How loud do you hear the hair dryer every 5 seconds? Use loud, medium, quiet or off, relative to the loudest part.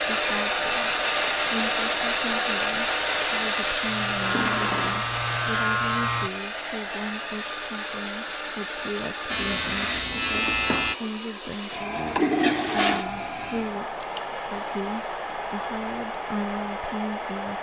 loud, medium, medium, medium.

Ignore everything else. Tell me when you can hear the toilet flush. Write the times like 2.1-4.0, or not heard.
4.2-5.0, 11.8-13.1.